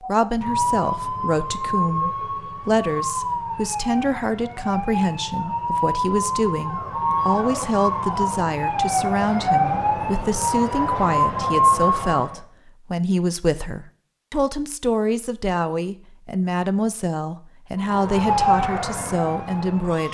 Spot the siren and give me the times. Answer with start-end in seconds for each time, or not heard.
0.0-12.4, 17.8-20.0.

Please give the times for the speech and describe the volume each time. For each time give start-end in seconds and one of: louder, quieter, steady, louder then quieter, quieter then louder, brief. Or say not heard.
0.1-20.0 steady.